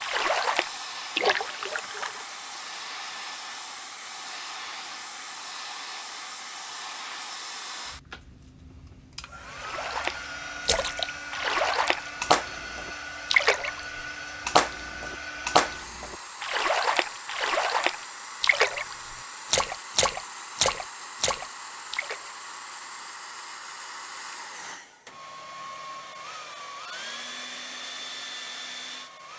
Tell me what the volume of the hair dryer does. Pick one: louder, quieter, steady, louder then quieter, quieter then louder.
steady.